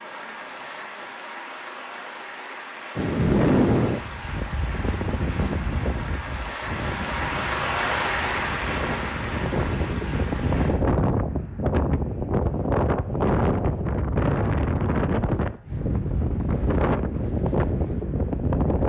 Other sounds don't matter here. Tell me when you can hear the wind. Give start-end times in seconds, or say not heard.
3.0-18.8.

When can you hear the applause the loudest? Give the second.
8 s.